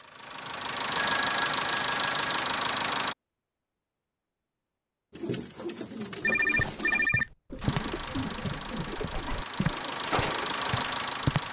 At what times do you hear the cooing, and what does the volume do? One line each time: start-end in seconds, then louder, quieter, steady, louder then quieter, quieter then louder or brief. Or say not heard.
5.1-10.6 steady.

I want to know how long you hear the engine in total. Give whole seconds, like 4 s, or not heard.
7 s.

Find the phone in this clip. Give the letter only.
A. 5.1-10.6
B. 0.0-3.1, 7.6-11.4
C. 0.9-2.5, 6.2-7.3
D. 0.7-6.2
C.